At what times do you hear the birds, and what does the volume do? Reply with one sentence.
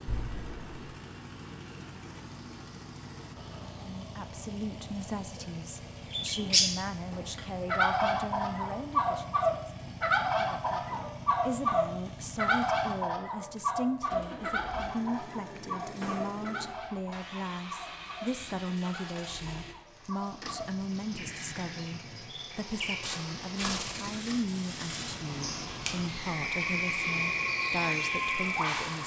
The birds can be heard from 6.1 to 29.0 s, getting quieter then louder.